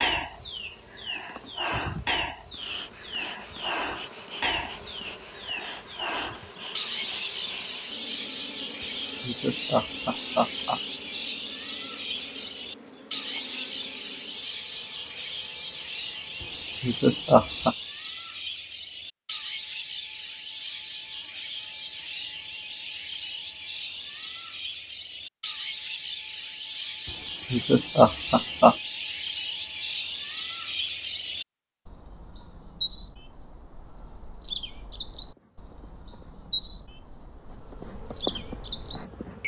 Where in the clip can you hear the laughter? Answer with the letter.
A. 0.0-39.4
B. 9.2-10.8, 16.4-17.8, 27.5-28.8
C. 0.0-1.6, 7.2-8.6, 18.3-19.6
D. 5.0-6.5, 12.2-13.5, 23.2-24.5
B.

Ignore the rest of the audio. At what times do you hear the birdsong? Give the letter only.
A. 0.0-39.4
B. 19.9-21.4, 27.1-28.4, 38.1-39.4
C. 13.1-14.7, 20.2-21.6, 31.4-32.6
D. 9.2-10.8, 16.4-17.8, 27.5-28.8
A.